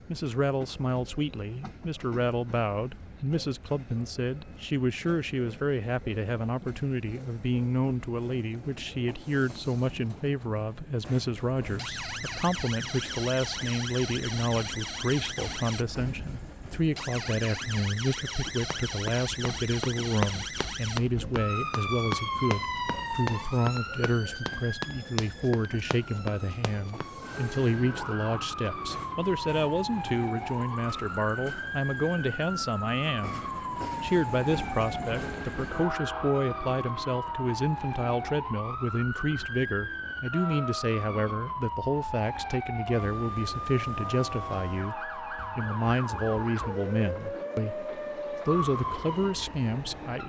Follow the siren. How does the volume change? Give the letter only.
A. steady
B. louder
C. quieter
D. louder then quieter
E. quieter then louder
A.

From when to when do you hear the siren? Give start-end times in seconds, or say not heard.
11.6-50.2.